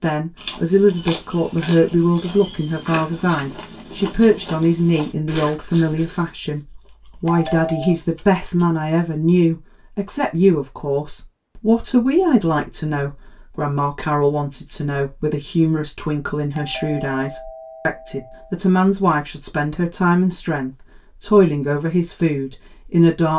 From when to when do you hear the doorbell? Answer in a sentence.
You can hear the doorbell from 7.2 to 8.0 s and from 16.5 to 18.6 s.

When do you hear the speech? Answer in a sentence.
The speech can be heard from 0.0 to 6.6 s and from 7.2 to 23.3 s.